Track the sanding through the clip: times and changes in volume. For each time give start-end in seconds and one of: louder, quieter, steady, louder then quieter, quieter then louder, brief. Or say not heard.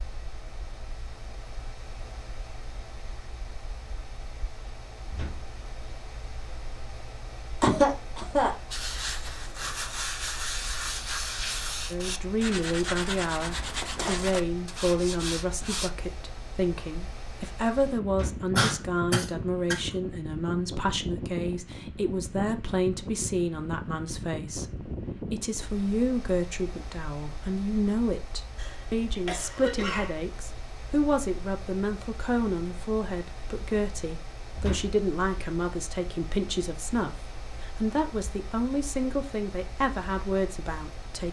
8.7-15.9 steady.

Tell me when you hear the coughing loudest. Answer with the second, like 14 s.
8 s.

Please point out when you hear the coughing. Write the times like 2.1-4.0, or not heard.
7.6-8.5, 18.6-19.8, 28.6-30.2.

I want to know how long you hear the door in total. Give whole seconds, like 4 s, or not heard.
2 s.